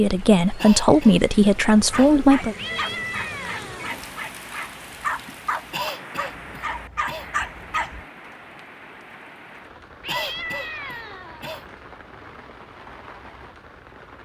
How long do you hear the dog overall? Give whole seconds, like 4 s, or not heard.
6 s.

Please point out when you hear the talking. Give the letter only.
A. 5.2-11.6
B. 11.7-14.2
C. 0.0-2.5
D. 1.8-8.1
C.